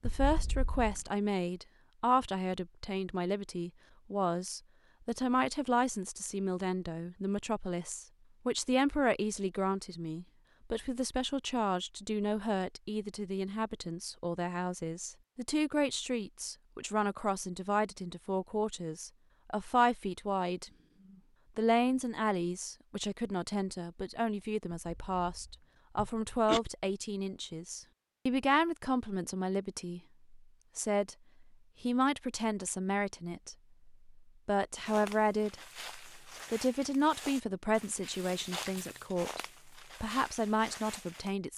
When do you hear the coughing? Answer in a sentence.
The coughing can be heard from 0.0 to 1.0 s and from 24.9 to 26.6 s.